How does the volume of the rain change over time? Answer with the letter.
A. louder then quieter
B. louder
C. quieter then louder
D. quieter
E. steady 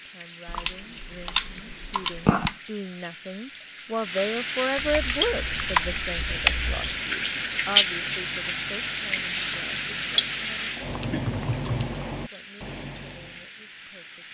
A.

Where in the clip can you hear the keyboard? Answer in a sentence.
You can hear the keyboard from 0.5 to 2.5 s, from 4.8 to 6.9 s and from 11.1 to 11.9 s.